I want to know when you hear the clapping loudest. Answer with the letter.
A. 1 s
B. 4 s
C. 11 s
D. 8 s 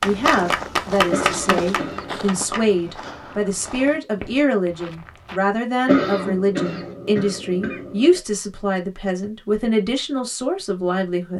A.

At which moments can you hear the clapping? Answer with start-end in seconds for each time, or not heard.
0.0-2.6.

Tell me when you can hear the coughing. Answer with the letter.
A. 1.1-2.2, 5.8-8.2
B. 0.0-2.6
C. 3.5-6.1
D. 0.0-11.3
A.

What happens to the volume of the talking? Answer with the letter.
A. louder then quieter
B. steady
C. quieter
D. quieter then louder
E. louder
B.